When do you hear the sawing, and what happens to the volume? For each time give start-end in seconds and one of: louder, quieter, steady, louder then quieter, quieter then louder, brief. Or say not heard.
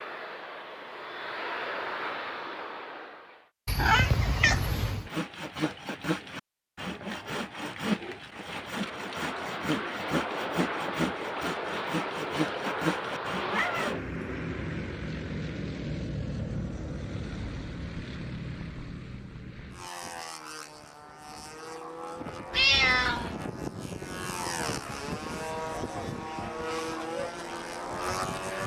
5.0-13.9 steady.